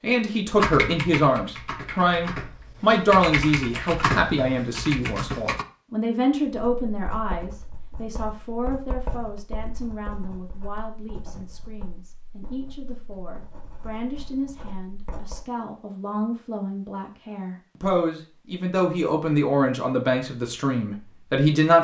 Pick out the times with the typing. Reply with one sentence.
You can hear the typing from 0.6 to 5.7 s.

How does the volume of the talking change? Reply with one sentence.
The loudness of the talking goes down, then up.